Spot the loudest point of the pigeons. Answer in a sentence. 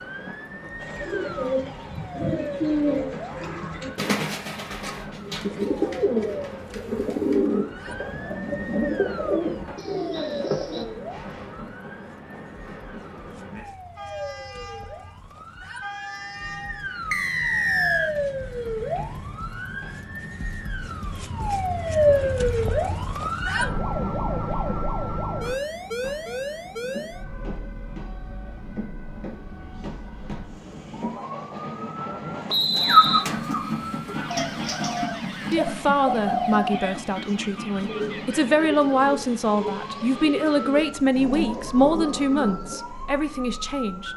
The volume of the pigeons peaks at 33 seconds.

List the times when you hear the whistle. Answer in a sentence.
You can hear the whistle from 17.1 to 18.1 s and from 32.5 to 33.2 s.